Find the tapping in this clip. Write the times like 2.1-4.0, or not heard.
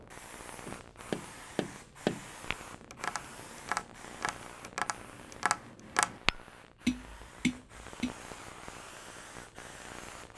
0.7-8.2.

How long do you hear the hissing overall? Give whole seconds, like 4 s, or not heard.
10 s.